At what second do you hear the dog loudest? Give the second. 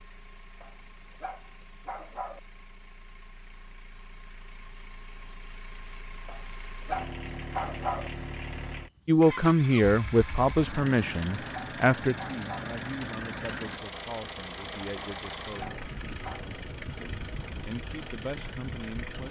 8 s.